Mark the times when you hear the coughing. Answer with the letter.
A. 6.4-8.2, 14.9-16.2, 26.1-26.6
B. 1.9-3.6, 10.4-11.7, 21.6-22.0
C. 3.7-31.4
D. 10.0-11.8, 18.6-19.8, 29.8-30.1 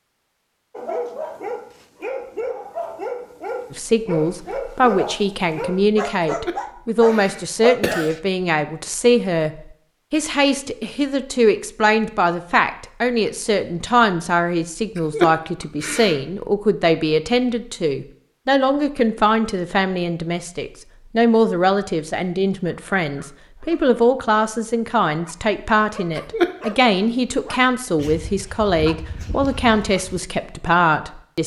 A.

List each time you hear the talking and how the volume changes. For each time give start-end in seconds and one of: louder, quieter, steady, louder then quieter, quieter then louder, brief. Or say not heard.
3.7-31.4 steady.